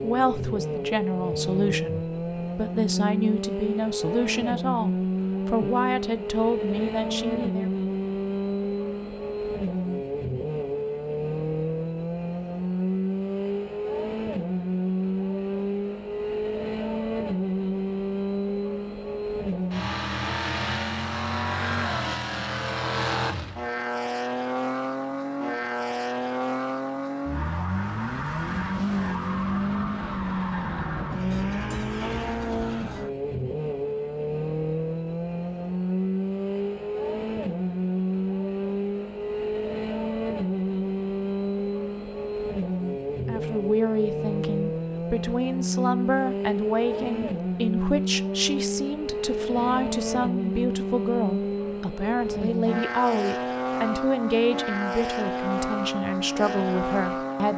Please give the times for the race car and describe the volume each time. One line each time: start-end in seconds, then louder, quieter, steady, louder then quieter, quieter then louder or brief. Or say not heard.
0.0-57.5 steady.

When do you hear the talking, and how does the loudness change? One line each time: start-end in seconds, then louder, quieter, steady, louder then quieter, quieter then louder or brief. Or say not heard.
0.0-7.7 steady
43.2-57.5 steady.